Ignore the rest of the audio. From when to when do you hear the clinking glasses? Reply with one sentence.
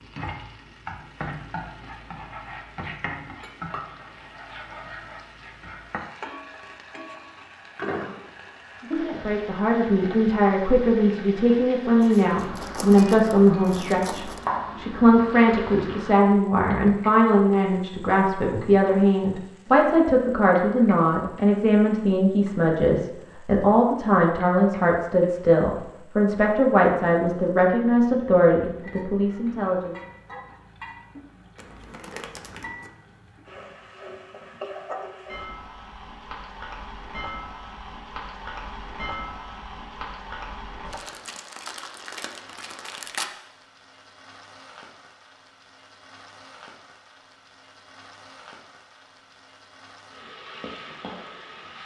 You can hear the clinking glasses from 3.4 to 4.2 s.